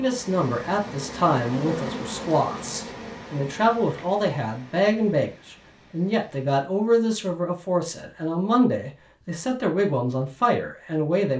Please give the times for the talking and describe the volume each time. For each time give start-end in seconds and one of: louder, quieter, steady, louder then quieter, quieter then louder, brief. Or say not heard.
0.0-11.3 steady.